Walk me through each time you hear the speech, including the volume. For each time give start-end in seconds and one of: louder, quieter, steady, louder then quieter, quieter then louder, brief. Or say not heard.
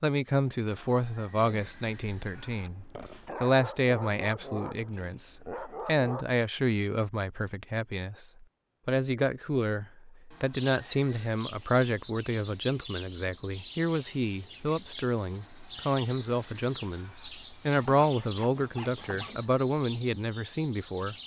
0.0-21.1 steady.